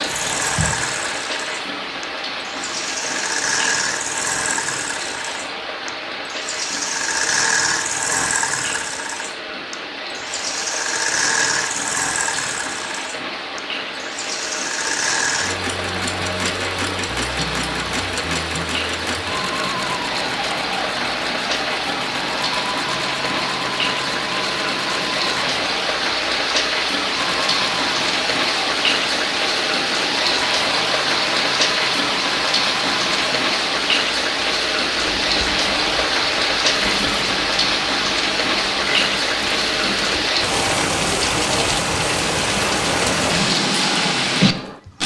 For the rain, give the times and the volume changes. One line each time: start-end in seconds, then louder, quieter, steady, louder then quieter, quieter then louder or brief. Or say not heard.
0.0-45.0 louder.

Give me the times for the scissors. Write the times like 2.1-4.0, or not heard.
0.1-0.8.